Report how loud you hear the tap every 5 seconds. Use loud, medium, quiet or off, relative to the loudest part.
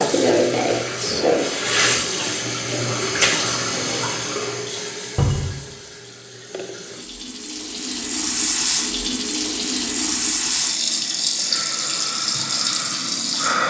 loud, medium, loud.